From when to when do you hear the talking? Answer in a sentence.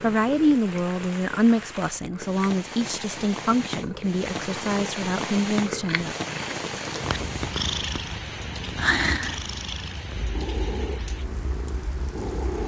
The talking can be heard from 0.0 to 6.2 s.